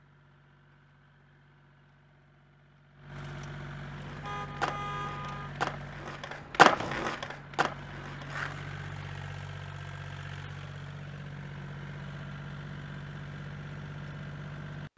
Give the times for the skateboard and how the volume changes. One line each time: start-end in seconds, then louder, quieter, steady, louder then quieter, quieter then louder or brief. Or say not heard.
4.0-8.7 louder then quieter.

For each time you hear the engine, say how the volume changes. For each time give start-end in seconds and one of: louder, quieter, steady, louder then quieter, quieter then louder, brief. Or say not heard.
0.0-14.9 louder.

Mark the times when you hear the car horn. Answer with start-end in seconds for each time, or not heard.
4.2-5.5.